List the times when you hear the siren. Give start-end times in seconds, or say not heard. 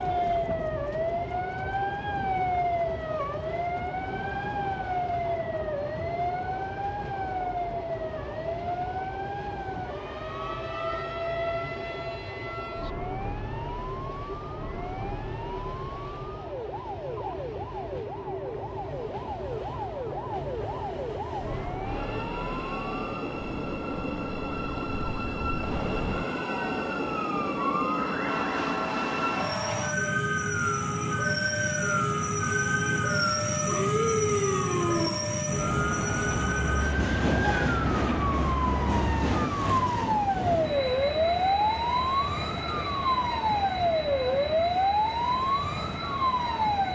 0.0-46.8.